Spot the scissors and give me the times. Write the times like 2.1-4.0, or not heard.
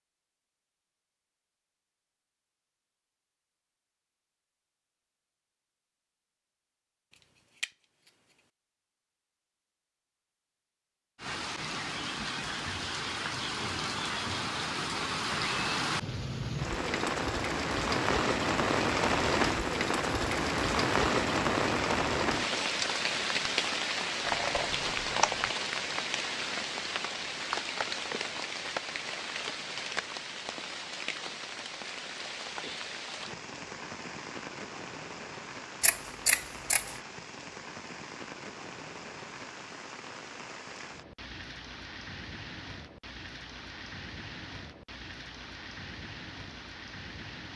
7.1-8.1, 24.2-25.5, 35.8-37.0.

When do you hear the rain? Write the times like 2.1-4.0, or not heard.
11.2-47.5.